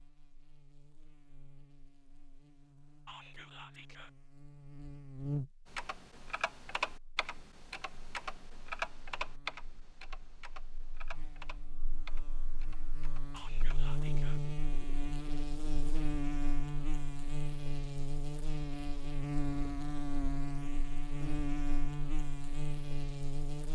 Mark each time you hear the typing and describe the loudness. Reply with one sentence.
You can hear the typing from 5.7 to 13.8 s, getting quieter.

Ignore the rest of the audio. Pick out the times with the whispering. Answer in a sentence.
The whispering can be heard from 3.0 to 4.1 s and from 13.3 to 14.4 s.